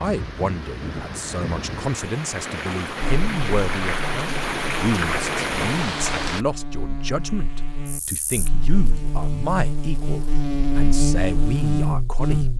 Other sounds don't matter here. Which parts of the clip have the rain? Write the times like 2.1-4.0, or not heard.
0.0-6.5.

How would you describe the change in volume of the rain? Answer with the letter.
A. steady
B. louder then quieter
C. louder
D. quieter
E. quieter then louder
C.